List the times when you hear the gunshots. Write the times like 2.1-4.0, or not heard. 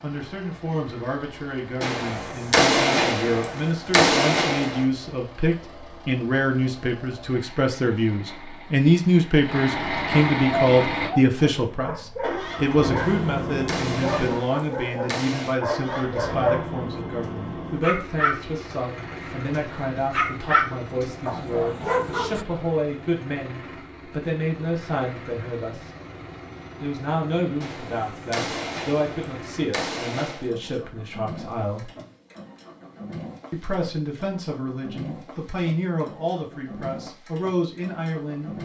1.8-4.8, 12.9-15.6, 27.6-30.5.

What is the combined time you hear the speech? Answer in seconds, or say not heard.
36 s.